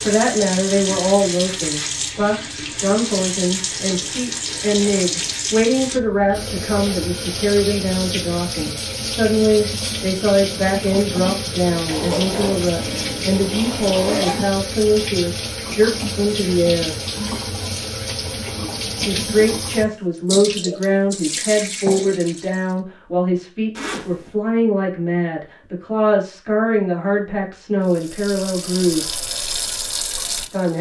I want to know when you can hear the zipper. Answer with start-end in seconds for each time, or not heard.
3.6-5.4, 11.8-14.5, 23.8-24.3.